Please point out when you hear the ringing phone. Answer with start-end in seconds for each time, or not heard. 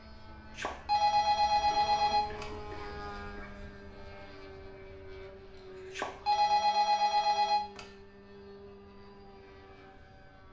0.6-2.5, 5.9-7.8.